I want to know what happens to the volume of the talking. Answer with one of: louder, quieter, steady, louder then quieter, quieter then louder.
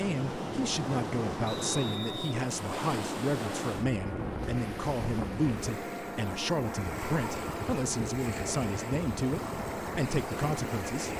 steady.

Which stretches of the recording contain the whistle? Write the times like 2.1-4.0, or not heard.
1.4-2.2.